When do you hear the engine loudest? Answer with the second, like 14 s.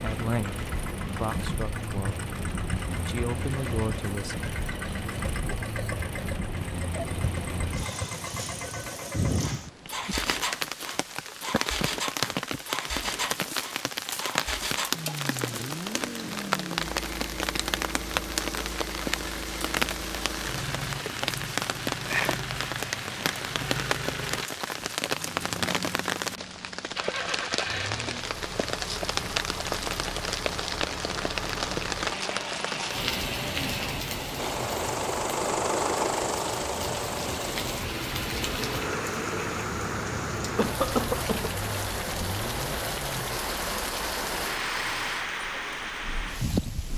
36 s.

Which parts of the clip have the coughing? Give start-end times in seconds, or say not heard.
40.5-41.5.